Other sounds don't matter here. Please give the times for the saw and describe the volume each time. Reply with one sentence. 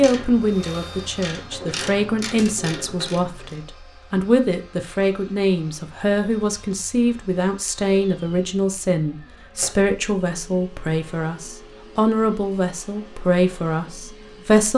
The saw can't be heard in this clip.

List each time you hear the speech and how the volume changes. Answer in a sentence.
You can hear the speech from 0.0 to 14.7 s, at a steady volume.